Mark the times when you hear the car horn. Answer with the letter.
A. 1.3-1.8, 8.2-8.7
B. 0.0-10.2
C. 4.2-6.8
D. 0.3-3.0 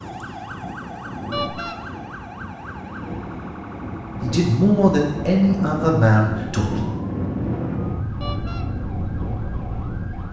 A.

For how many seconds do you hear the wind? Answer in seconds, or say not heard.
10 s.